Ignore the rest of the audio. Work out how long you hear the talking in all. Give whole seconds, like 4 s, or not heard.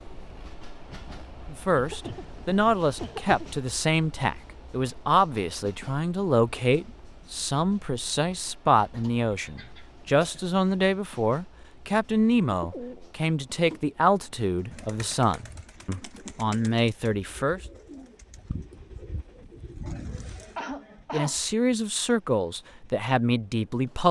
19 s.